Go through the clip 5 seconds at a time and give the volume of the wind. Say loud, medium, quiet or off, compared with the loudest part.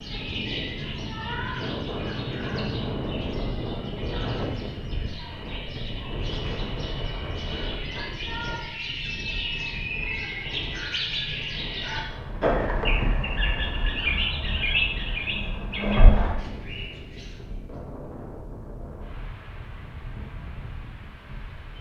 loud, medium, medium, medium, medium.